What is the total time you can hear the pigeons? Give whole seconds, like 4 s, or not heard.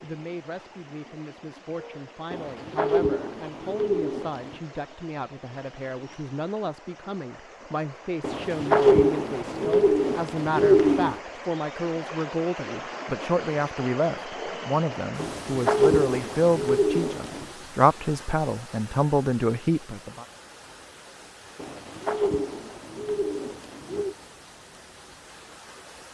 10 s.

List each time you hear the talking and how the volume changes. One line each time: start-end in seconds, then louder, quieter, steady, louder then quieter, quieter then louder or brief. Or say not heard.
0.0-20.2 louder.